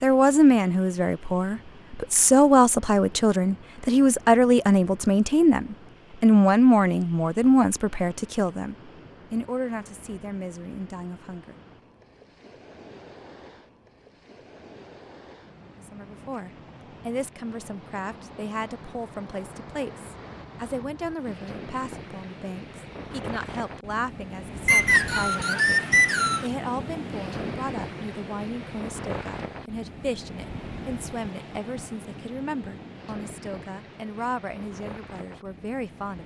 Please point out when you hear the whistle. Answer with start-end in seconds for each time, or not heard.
24.6-26.5.